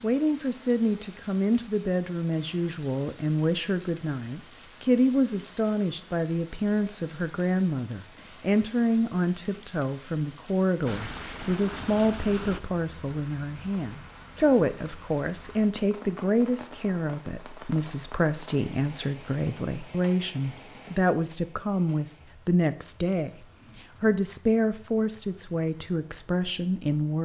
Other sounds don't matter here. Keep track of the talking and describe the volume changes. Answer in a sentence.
The volume of the talking stays about the same.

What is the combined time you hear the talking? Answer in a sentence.
You can hear the talking for 27 seconds altogether.